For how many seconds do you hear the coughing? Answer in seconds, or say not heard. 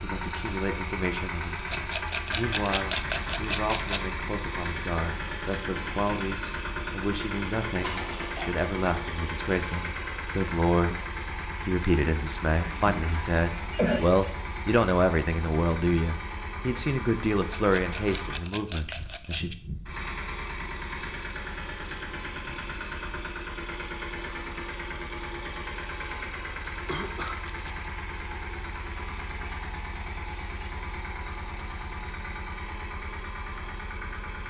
3 s.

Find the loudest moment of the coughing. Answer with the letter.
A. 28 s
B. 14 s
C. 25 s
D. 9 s
B.